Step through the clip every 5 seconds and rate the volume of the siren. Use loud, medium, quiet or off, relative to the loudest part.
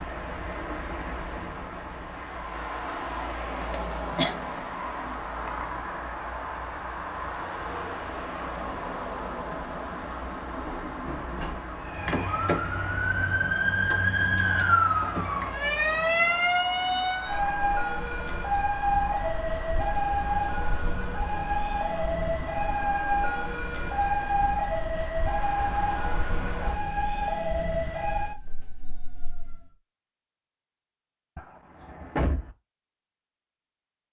off, off, loud, loud, loud, medium, off.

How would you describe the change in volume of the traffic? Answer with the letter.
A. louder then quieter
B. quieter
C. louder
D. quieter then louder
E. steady
B.